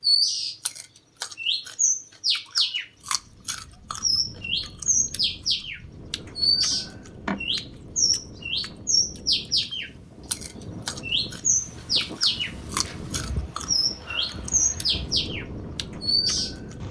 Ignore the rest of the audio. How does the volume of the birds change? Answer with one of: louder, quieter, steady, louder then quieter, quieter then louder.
steady.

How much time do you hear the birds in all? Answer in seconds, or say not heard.
17 s.